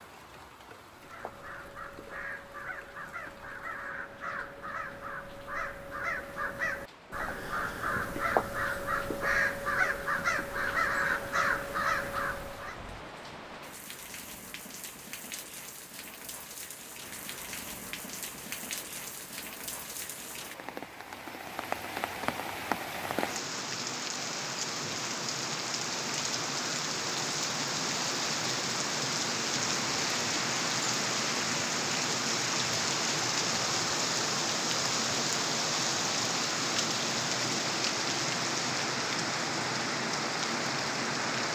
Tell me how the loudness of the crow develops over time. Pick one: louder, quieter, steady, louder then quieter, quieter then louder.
louder.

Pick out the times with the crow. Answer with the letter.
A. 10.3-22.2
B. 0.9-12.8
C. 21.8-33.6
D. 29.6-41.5
B.